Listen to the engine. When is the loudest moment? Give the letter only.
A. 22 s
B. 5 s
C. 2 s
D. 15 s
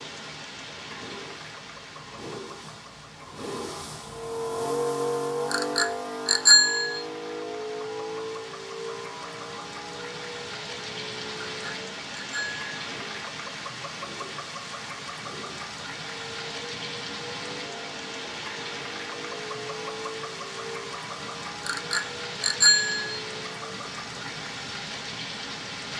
B.